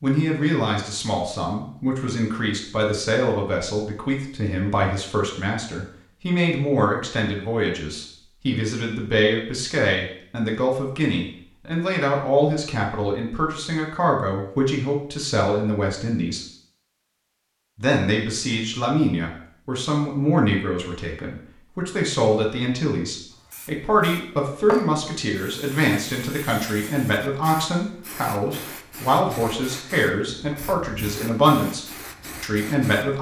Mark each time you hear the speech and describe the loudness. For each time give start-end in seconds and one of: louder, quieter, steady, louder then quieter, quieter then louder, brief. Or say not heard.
0.0-16.4 steady
17.8-33.1 steady.